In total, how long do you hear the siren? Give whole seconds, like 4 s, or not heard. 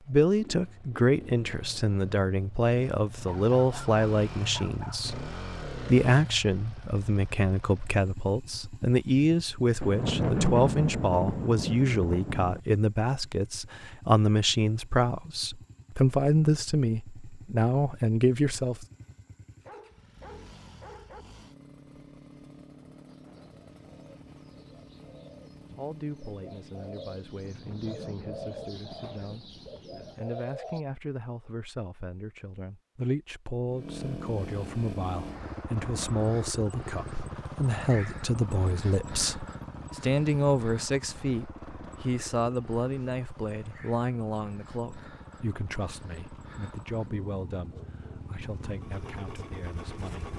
not heard.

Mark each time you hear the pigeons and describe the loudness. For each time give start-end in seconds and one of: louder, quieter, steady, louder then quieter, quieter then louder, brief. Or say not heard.
22.9-30.9 louder.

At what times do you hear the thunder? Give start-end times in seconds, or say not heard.
9.8-12.6, 27.4-30.2.